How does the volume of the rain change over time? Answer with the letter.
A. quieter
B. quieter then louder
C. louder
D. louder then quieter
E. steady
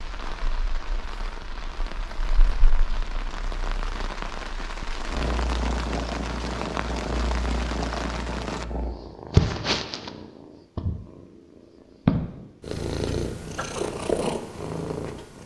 C.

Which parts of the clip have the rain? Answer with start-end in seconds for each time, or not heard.
0.0-8.7.